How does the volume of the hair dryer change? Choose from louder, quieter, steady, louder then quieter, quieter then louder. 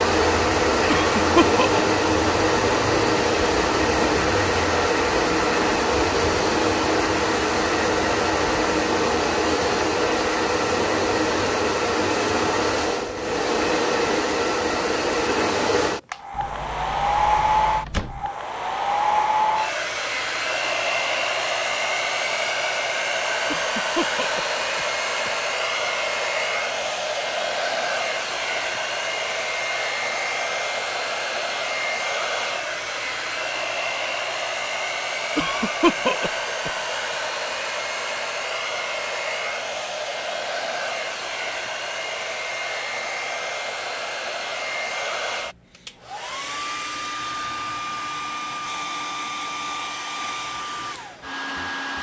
quieter.